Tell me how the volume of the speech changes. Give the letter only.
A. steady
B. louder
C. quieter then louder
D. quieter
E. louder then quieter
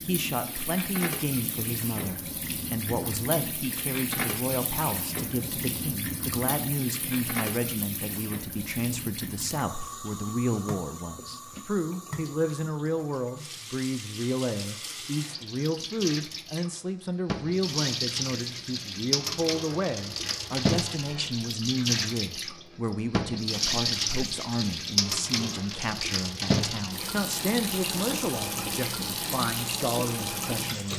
A.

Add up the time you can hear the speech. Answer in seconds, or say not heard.
31 s.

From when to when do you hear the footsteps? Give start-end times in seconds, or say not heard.
not heard.